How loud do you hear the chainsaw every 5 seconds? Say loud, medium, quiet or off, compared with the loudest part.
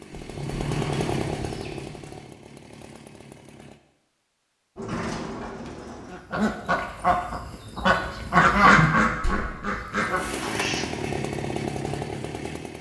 loud, off, loud.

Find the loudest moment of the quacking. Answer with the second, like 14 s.
9 s.